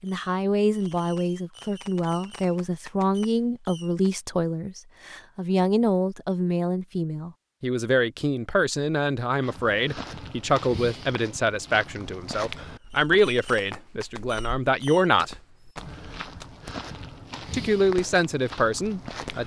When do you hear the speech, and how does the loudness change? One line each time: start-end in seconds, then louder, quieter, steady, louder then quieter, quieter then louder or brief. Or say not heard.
0.0-15.3 steady
17.5-19.4 brief.